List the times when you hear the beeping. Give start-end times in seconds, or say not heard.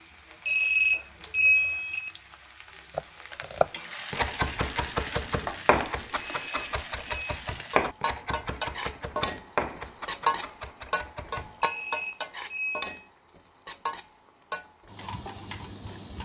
0.5-2.1, 6.2-7.5, 11.6-13.1.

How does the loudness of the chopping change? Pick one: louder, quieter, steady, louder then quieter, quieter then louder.
quieter.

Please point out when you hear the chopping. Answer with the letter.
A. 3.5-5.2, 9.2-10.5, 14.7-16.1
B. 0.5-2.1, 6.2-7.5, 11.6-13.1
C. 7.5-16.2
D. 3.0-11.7
D.